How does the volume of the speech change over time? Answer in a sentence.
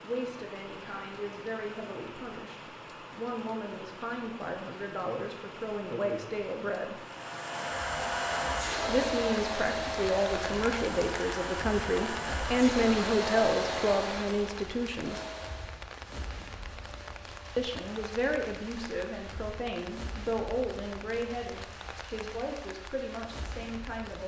The loudness of the speech goes up, then down.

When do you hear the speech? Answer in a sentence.
The speech can be heard from 0.0 to 7.0 s, from 8.8 to 15.2 s and from 17.6 to 24.2 s.